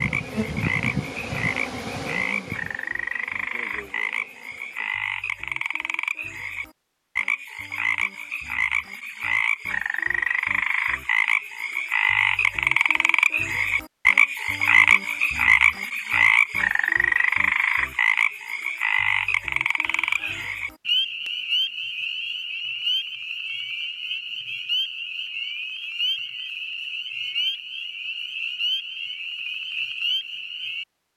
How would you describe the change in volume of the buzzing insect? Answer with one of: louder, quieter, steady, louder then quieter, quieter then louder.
quieter.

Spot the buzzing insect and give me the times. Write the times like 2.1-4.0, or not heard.
0.0-5.0.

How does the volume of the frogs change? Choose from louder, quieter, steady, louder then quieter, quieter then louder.
louder then quieter.